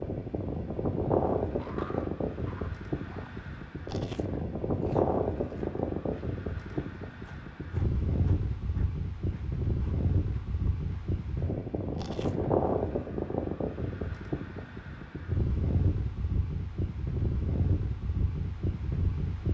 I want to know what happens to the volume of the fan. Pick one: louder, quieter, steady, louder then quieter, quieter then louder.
steady.